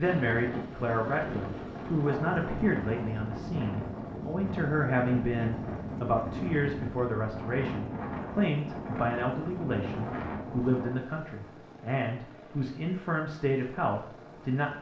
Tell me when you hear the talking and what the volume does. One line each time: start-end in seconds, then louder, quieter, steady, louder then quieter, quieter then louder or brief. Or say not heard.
0.0-14.7 steady.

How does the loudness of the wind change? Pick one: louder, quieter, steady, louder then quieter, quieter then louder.
steady.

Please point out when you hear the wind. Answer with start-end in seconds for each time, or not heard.
0.0-11.1.